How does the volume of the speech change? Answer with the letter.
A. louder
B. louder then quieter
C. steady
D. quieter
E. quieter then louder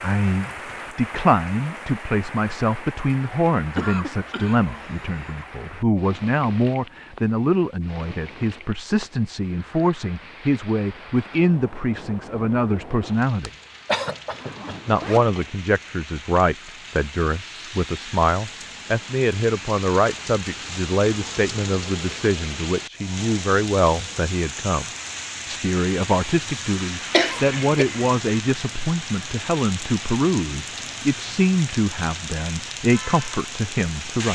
C.